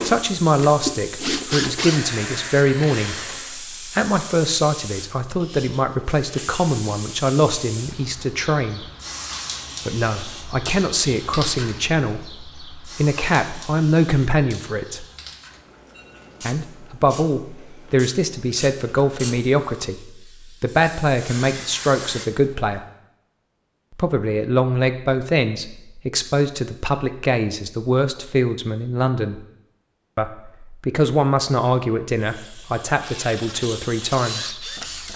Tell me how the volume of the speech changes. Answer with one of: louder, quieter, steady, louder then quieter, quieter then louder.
steady.